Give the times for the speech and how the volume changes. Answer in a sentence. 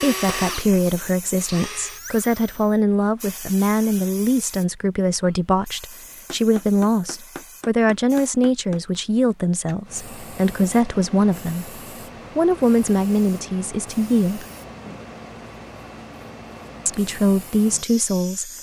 The speech can be heard from 0.0 to 14.4 s, at a steady volume; and briefly from 16.9 to 18.5 s.